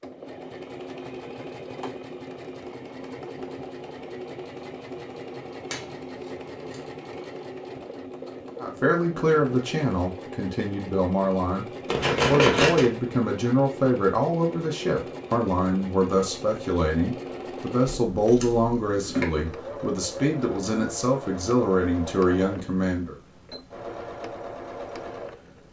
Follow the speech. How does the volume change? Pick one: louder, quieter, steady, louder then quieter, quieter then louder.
steady.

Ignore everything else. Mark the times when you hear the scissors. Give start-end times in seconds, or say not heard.
5.7-6.8, 11.8-12.8, 18.1-19.2.